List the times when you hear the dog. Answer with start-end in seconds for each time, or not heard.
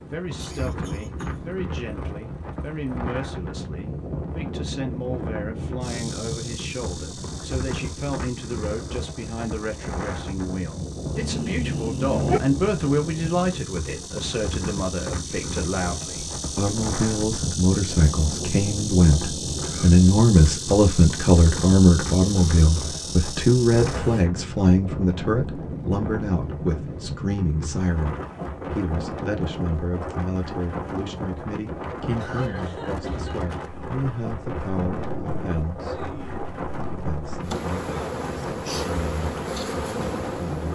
11.2-12.4.